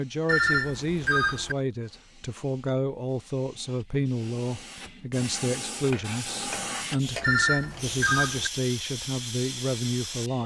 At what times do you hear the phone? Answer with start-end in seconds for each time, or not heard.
0.2-1.6, 7.2-8.5.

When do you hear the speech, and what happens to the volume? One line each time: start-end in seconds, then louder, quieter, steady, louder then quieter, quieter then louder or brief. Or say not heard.
0.0-10.4 steady.